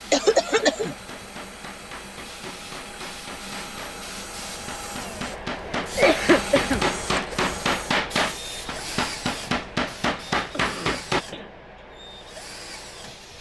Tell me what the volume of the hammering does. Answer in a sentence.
The volume of the hammering goes up.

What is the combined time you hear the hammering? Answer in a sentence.
The hammering can be heard for 11 seconds in total.